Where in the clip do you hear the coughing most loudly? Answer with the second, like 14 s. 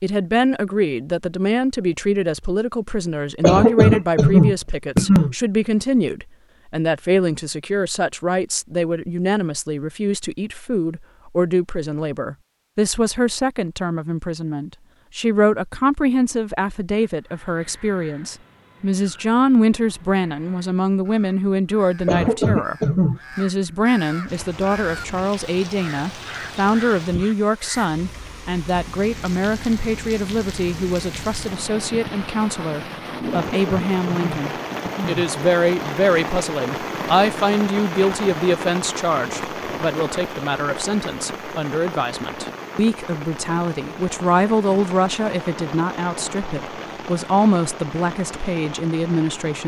4 s.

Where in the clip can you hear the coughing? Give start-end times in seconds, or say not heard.
3.4-5.3, 22.1-23.2, 33.3-35.3.